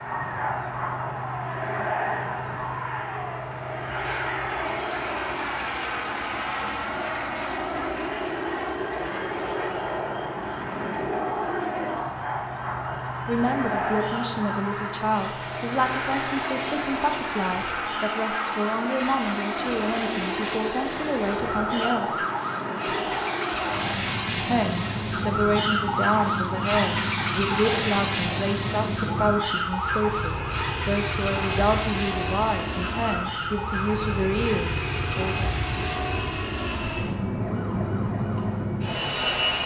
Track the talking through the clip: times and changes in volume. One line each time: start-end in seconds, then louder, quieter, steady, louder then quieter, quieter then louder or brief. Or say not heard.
13.2-22.2 steady
24.4-35.5 steady.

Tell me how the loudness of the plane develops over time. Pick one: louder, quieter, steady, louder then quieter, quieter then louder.
steady.